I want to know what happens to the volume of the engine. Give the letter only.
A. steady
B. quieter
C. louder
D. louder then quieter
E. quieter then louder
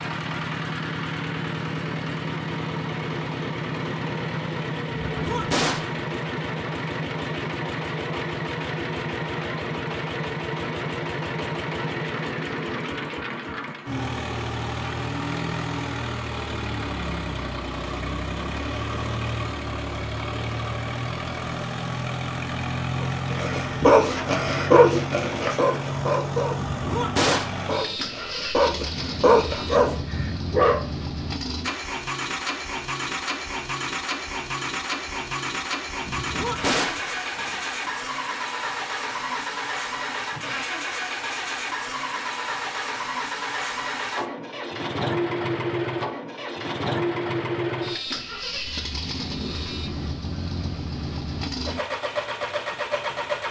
A.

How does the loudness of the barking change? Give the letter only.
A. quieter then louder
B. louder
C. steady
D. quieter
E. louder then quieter
A.